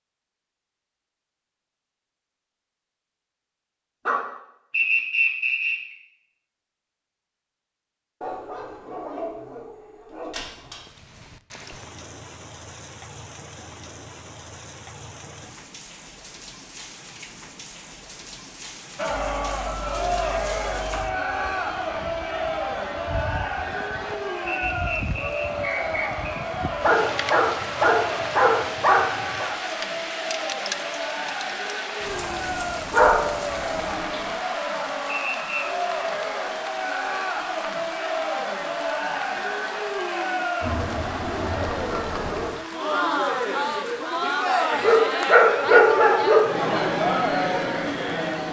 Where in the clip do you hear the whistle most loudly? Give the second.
5 s.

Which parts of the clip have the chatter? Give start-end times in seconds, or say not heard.
18.9-48.4.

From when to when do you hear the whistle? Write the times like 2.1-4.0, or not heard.
4.7-5.8, 24.4-26.2, 35.0-35.6.